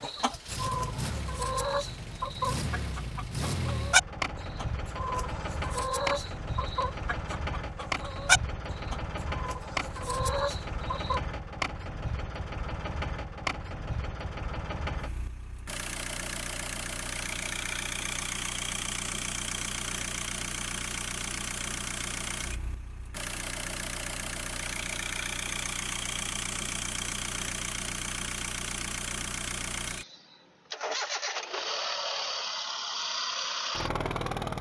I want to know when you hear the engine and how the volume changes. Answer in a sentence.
You can hear the engine from 0.0 to 34.5 s, at a steady volume.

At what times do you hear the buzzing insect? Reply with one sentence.
You can't hear the buzzing insect here.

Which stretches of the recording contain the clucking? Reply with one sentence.
You can hear the clucking from 0.0 to 11.2 s.